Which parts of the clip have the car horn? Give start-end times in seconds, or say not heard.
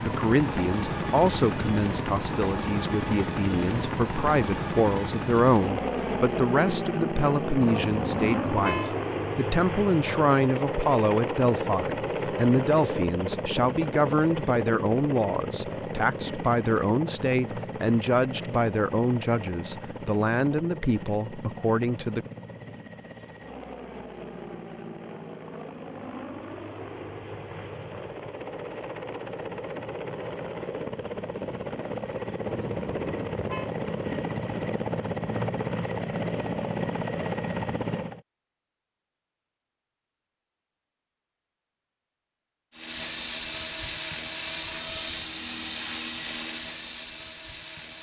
7.6-8.9, 32.5-33.7.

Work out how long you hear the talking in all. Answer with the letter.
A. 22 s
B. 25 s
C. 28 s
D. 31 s
A.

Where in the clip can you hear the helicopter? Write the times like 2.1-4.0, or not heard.
0.0-38.2, 42.7-47.9.